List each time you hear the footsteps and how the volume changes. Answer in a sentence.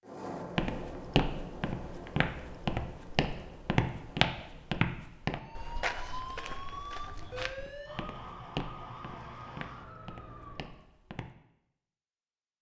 You can hear the footsteps from 0.6 to 11.3 s, getting quieter.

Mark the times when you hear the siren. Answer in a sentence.
The siren can be heard from 5.3 to 10.8 s.